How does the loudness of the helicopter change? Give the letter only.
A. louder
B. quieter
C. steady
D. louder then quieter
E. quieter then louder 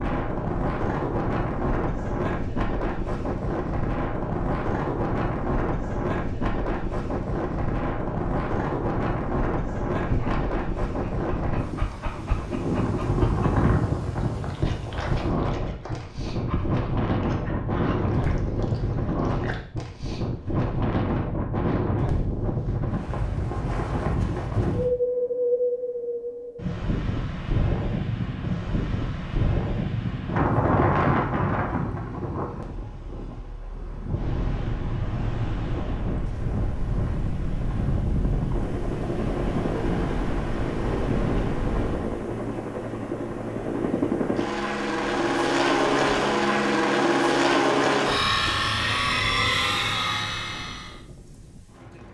A.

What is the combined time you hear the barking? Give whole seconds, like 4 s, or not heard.
10 s.